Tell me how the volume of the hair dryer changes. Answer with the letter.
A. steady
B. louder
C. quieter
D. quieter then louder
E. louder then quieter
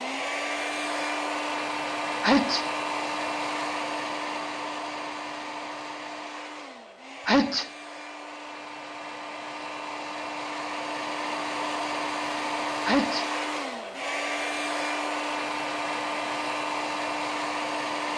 D.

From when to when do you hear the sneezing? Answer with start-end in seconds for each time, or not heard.
2.2-2.6, 7.2-7.7, 12.8-13.2.